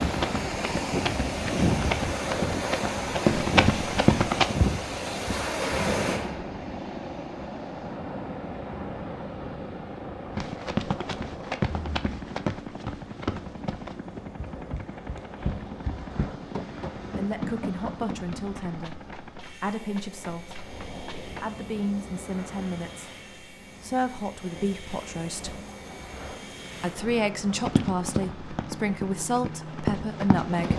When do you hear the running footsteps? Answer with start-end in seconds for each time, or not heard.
0.0-4.5, 10.3-21.4, 27.6-30.7.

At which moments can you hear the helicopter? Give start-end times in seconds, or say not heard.
0.1-30.7.